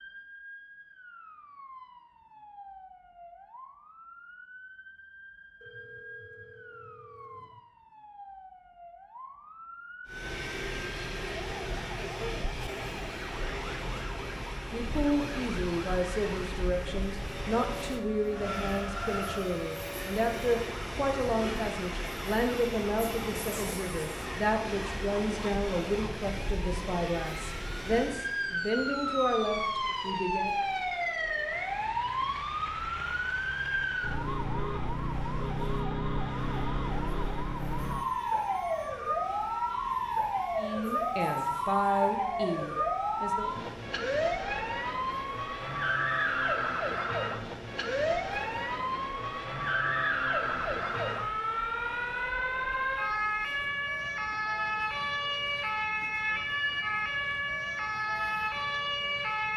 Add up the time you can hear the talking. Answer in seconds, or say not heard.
19 s.